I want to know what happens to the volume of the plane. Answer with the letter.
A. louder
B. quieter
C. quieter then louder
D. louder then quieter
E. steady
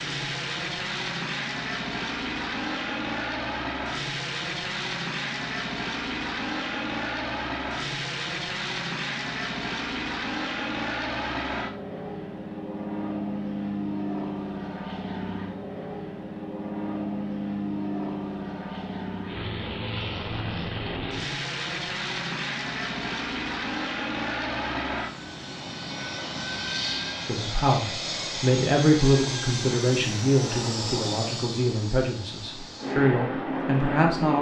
E.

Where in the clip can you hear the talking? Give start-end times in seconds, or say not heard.
27.2-34.3.